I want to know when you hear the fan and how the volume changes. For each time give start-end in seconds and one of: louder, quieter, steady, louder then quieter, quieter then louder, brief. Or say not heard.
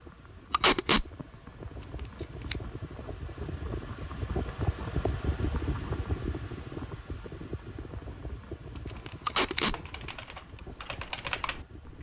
0.0-11.9 louder then quieter.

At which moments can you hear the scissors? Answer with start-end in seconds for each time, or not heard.
1.8-2.6, 8.8-10.1.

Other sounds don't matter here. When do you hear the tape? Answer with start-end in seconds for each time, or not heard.
0.5-1.1, 9.2-9.8.